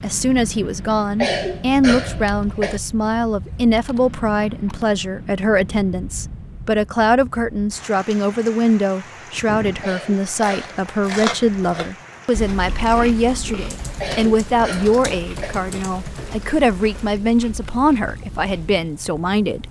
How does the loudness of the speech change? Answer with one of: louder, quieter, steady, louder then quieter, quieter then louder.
steady.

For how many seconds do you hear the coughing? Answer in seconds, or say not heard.
4 s.